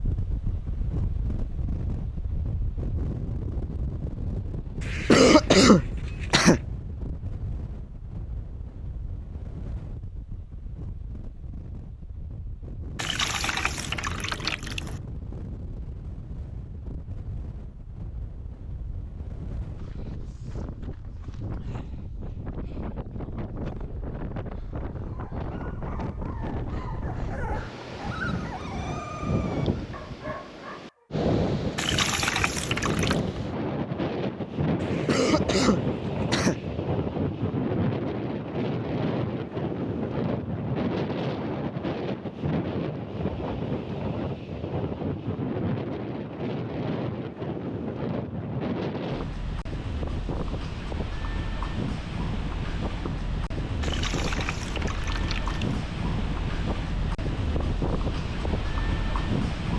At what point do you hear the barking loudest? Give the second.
28 s.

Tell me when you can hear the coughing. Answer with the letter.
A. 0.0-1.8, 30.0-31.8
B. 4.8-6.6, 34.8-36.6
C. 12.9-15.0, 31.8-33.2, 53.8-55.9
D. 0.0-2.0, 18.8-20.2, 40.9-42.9
B.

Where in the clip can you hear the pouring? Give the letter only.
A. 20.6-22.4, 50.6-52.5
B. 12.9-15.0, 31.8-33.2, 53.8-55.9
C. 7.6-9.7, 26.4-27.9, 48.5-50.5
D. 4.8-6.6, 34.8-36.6
B.